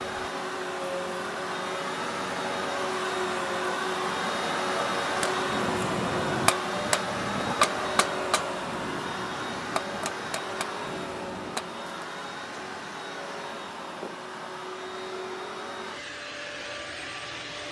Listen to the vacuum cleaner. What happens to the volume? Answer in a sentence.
The loudness of the vacuum cleaner goes down.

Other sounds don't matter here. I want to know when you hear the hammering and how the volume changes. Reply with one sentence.
The hammering can be heard from 5.1 to 11.8 s, getting quieter.